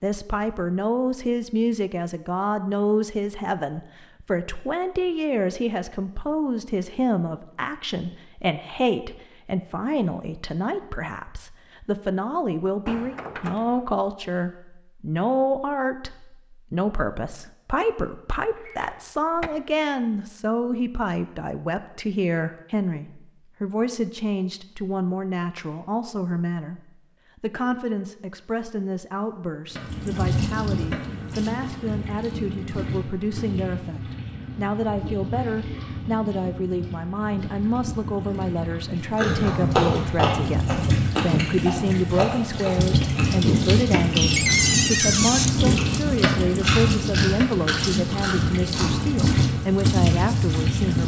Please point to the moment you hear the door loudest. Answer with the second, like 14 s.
45 s.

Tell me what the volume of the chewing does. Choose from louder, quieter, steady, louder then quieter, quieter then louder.
quieter.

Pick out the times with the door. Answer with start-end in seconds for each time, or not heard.
12.8-13.8, 18.6-19.5, 44.2-45.5.